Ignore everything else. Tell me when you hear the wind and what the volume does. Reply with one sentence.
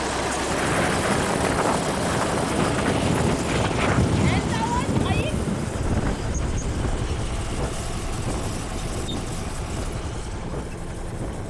You can hear the wind from 0.0 to 11.4 s, getting quieter.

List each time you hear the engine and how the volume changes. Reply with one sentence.
The engine can be heard from 0.0 to 11.4 s, getting quieter.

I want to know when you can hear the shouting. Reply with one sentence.
The shouting can be heard from 4.1 to 5.5 s.